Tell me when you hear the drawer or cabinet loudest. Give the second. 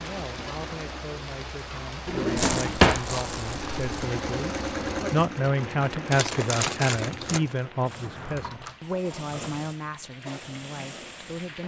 3 s.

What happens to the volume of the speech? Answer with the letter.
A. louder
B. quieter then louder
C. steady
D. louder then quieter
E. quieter
D.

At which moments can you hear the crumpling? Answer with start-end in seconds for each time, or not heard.
2.4-4.0, 6.1-7.4.